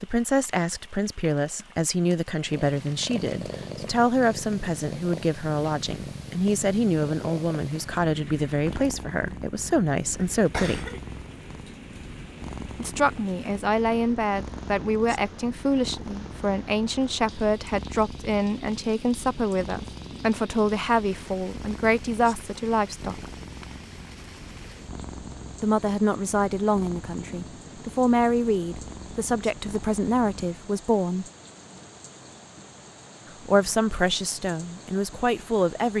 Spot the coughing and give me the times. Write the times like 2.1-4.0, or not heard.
10.2-11.0.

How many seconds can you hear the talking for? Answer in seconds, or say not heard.
29 s.